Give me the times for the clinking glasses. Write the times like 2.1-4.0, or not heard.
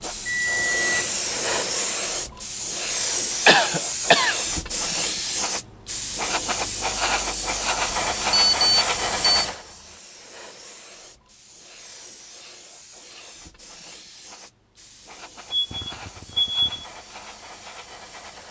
not heard.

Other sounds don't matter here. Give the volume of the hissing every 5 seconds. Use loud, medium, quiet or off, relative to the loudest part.
loud, loud, quiet, quiet.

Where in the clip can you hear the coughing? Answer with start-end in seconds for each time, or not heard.
3.5-4.3.